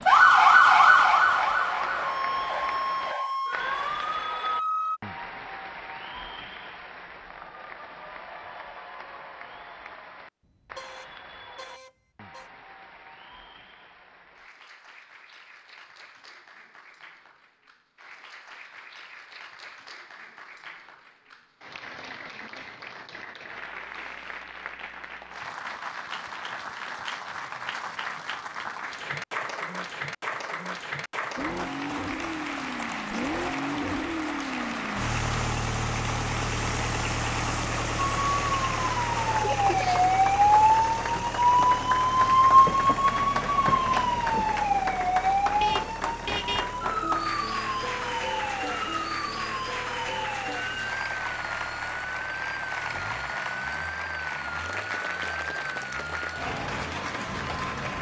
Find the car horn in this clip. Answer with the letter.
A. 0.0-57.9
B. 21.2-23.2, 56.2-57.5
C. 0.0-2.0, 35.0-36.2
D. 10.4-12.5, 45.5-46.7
D.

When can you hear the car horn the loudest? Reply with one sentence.
The volume of the car horn peaks at 46 seconds.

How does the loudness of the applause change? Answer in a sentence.
The loudness of the applause goes down, then up.